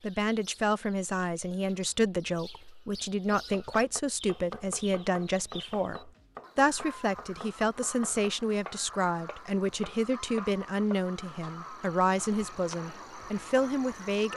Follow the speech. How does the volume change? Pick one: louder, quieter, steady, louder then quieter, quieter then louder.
steady.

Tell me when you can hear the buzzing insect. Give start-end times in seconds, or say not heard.
not heard.